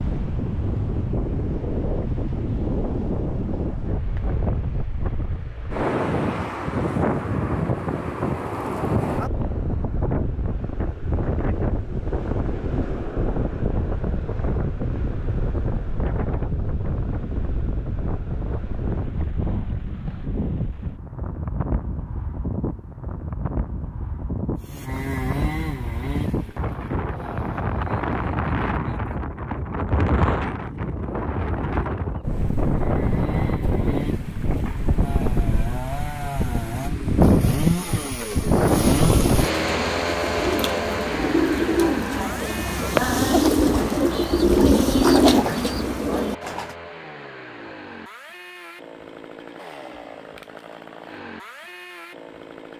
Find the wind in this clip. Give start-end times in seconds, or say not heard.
0.0-39.5.